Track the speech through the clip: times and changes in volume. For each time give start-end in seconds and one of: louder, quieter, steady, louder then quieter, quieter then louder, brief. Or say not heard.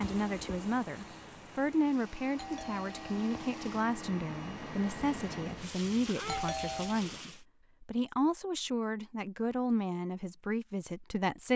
0.0-11.5 steady.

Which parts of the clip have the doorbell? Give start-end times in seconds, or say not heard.
2.4-3.4, 6.2-7.0.